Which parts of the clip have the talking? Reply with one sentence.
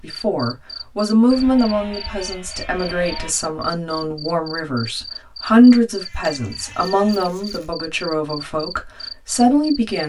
The talking can be heard from 0.0 to 10.0 s.